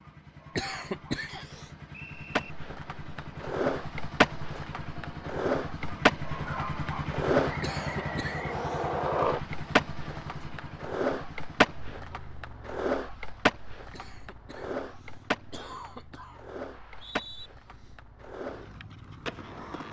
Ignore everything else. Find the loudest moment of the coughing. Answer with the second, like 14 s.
1 s.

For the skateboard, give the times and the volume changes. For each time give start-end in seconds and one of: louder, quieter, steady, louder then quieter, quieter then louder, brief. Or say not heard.
2.1-19.8 quieter.